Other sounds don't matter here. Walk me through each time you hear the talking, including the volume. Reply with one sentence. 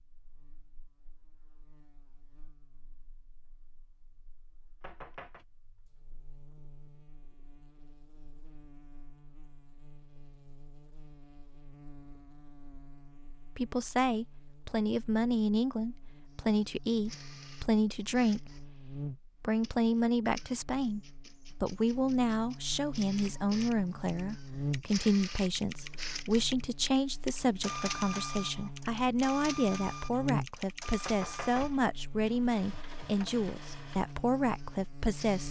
The talking can be heard from 13.6 to 21.0 s, at a steady volume; and from 21.6 to 35.4 s, at a steady volume.